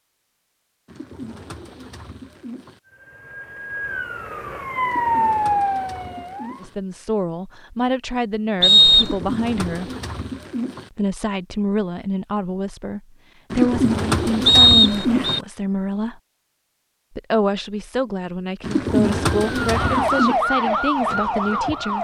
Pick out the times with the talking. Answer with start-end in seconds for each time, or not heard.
6.6-9.9, 10.9-16.2, 17.1-21.9.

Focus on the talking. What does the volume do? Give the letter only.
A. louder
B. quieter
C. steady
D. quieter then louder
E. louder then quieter
C.